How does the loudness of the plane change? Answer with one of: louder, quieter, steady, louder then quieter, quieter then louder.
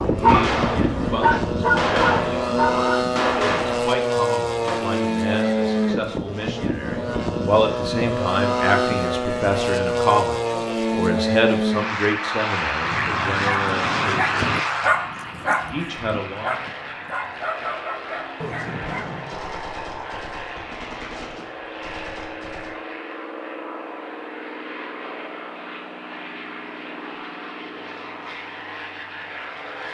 quieter.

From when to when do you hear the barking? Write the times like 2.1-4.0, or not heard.
0.0-2.9, 12.8-19.4.